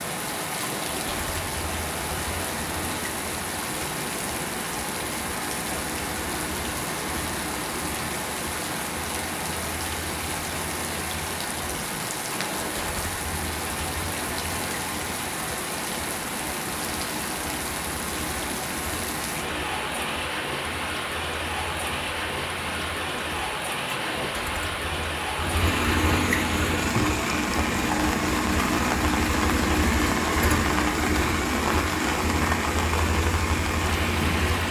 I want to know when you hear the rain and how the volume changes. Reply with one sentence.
You can hear the rain from 0.0 to 34.6 s, at a steady volume.